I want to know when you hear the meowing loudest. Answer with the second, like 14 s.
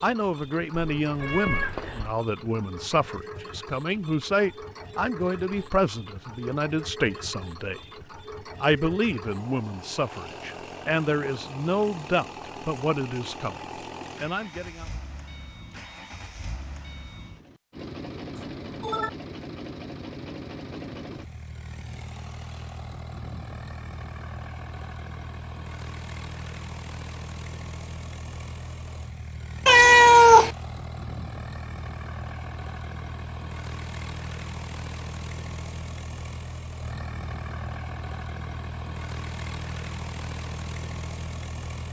30 s.